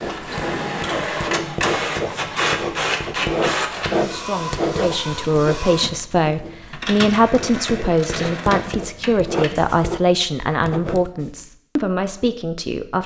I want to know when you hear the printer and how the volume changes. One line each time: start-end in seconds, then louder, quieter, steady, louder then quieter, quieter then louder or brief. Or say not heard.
0.0-9.9 quieter.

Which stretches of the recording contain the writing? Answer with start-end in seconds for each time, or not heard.
0.0-11.4.